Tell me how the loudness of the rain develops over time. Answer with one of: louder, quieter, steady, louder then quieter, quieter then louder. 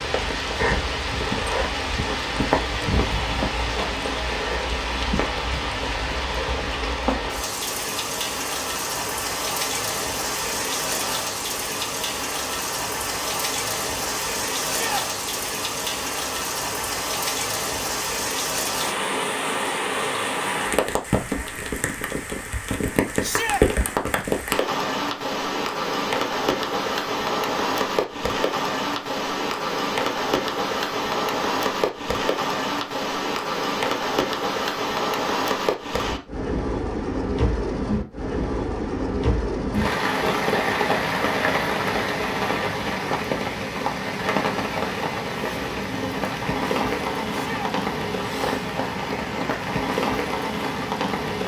steady.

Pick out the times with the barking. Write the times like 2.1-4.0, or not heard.
not heard.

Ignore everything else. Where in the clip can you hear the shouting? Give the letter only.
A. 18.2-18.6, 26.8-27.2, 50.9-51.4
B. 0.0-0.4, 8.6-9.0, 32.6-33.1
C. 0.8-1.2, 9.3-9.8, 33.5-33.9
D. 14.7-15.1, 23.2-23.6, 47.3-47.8
D.